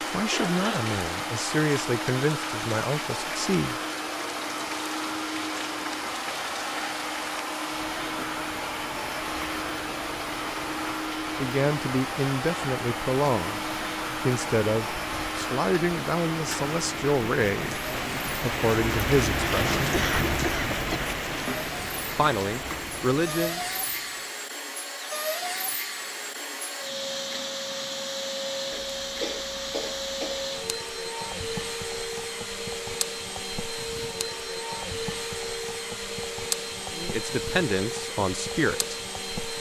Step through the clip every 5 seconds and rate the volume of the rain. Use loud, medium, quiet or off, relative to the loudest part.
medium, medium, medium, loud, loud, off, off, off.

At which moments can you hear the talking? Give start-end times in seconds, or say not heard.
0.1-3.8, 11.3-19.9, 22.1-23.6, 37.0-39.0.